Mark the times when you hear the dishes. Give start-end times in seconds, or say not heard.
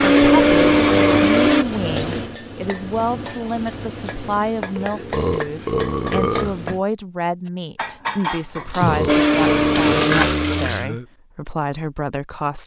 7.5-10.2.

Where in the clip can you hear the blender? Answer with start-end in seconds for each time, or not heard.
0.0-1.6, 9.1-10.7.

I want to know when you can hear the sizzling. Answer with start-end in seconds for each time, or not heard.
0.0-6.8, 8.7-10.8.